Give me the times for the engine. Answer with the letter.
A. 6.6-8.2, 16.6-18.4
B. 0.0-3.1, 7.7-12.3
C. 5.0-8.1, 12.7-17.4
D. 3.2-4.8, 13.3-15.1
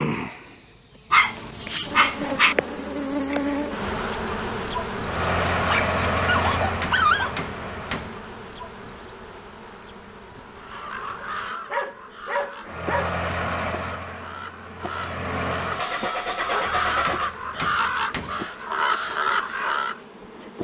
C.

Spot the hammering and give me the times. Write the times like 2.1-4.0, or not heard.
6.6-8.2, 16.6-18.4.